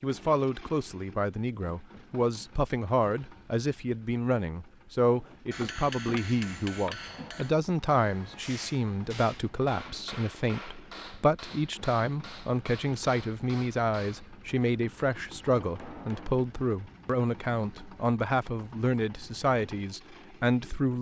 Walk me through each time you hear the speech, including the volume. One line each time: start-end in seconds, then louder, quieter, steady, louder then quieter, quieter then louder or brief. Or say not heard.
0.0-20.9 steady.